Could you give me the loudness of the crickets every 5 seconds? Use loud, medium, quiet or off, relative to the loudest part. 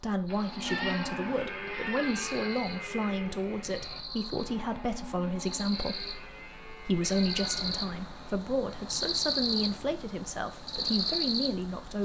medium, loud, loud.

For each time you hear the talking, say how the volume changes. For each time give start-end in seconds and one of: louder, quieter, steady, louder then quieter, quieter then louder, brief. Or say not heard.
0.0-12.0 steady.